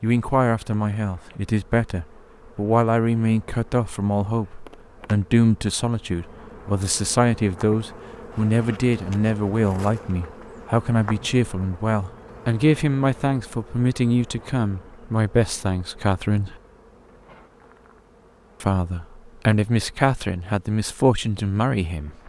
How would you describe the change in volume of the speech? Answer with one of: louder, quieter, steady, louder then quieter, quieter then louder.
steady.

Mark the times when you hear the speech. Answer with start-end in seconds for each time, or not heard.
0.0-16.6, 18.6-22.2.